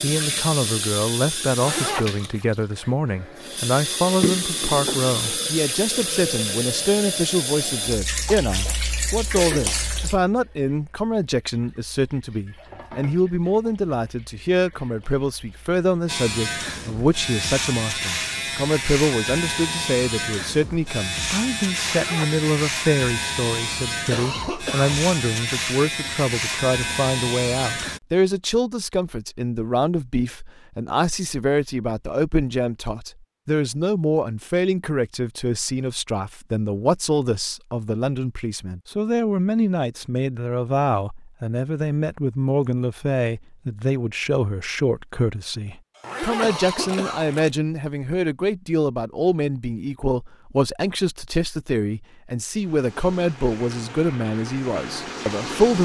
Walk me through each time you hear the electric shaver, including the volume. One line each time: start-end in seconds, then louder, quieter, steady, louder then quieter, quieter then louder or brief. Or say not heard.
16.1-28.0 steady.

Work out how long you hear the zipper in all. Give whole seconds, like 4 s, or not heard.
3 s.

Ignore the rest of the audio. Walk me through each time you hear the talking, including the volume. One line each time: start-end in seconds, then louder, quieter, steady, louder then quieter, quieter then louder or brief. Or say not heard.
0.0-55.8 steady.